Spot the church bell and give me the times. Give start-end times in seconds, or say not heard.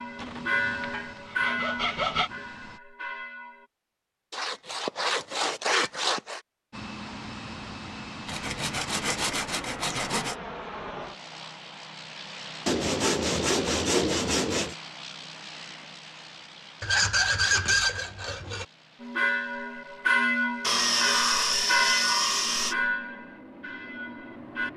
0.0-3.6, 19.0-24.7.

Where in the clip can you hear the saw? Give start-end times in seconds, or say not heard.
0.1-2.3, 4.3-6.4, 8.2-10.3, 12.7-14.8, 16.8-18.6, 20.6-22.8.